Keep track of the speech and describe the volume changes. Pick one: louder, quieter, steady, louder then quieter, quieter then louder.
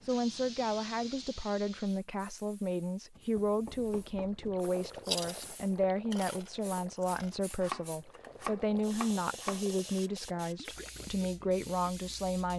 steady.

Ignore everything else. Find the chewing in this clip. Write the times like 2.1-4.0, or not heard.
5.0-7.3.